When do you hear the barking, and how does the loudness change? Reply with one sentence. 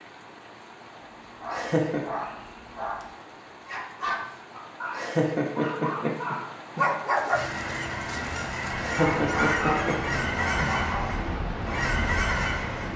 The barking can be heard from 0.9 to 11.2 s, getting louder.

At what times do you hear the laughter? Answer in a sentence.
The laughter can be heard from 1.5 to 2.0 s, from 4.9 to 6.8 s and from 8.8 to 10.7 s.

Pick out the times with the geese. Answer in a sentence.
You can hear the geese from 7.3 to 12.9 s.